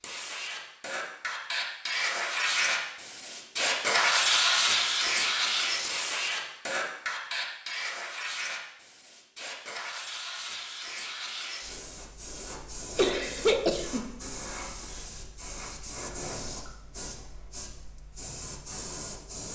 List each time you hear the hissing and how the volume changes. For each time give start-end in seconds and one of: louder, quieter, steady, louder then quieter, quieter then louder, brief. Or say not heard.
0.0-19.5 quieter.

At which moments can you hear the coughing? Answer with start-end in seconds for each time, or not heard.
12.9-14.1.